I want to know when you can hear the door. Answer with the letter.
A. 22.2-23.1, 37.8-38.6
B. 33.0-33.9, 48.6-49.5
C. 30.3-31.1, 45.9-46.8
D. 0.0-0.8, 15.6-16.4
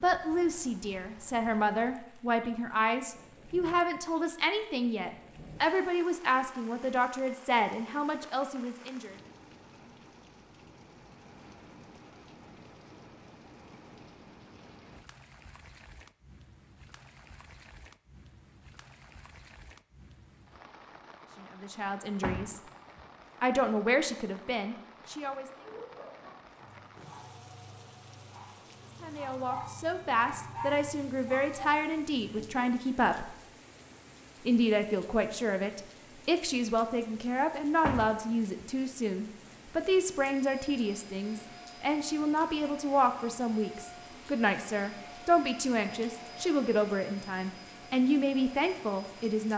A.